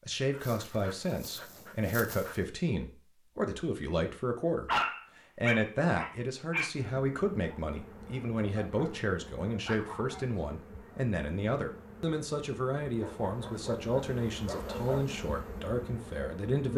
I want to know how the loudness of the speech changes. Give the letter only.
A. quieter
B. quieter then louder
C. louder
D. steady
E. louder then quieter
D.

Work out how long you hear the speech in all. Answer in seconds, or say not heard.
16 s.